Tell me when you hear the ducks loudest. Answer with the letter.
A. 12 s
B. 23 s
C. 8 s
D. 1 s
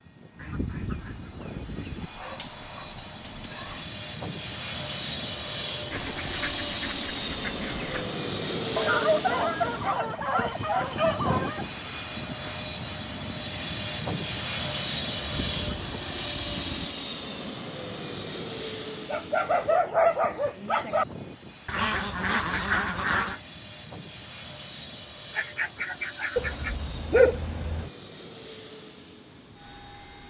B.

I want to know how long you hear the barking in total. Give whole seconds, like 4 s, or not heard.
8 s.